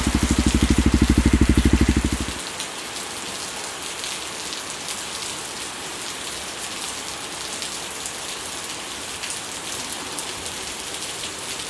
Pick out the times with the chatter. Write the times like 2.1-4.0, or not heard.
not heard.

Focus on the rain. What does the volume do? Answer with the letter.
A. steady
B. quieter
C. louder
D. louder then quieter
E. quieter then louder
A.